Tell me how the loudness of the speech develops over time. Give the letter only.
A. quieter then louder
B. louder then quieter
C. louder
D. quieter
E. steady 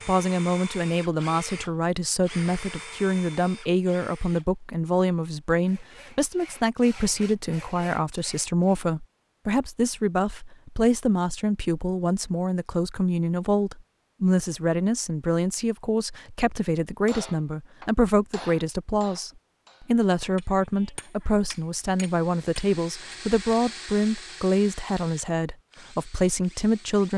E.